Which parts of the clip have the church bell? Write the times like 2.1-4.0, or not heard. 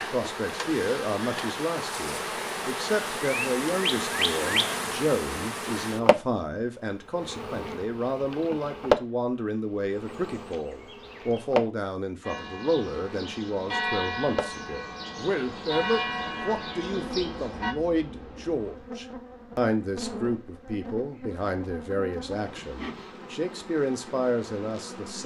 12.2-17.8.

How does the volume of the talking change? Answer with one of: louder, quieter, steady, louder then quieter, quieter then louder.
steady.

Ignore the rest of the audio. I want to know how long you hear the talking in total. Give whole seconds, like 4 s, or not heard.
25 s.